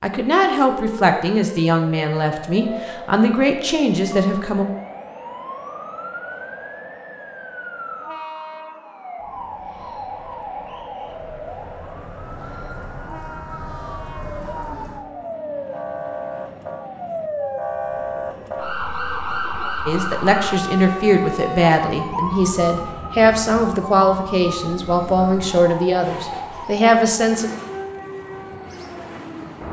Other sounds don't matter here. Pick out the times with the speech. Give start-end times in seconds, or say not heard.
0.0-4.7, 19.9-27.5.